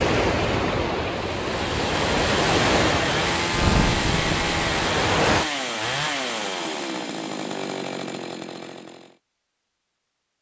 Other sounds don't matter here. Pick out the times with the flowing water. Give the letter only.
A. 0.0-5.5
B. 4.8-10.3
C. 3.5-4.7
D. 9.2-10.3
A.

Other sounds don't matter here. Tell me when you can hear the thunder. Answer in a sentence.
The thunder can be heard from 3.5 to 4.7 s.